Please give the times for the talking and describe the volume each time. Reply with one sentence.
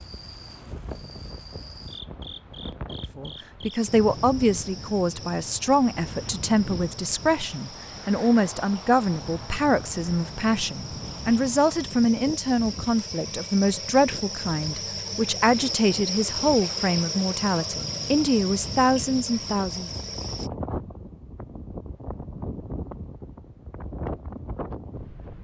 The talking can be heard from 3.1 to 19.9 s, at a steady volume.